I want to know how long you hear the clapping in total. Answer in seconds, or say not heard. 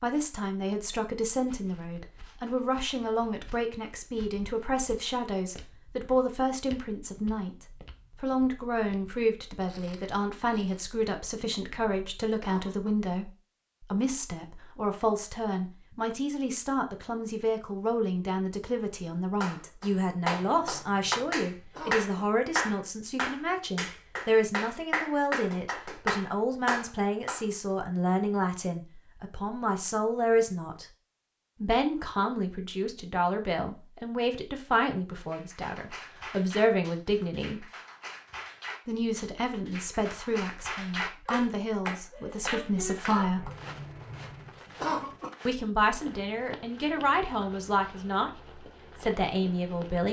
16 s.